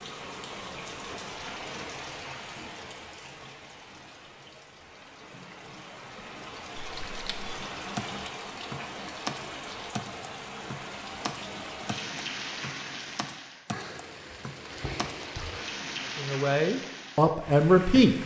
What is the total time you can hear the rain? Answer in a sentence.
The rain can be heard for 18 seconds in total.